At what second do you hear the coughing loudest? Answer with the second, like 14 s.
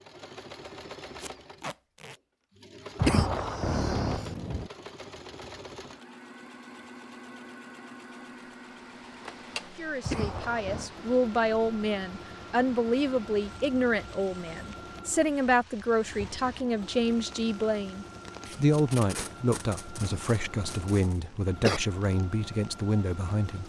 3 s.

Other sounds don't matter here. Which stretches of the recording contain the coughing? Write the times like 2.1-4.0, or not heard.
3.0-4.7, 10.0-10.9, 19.9-21.8.